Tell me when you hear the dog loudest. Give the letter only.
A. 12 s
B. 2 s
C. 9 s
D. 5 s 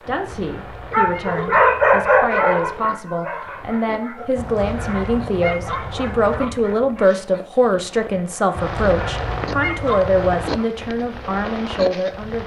B.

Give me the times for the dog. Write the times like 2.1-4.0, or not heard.
0.9-7.2.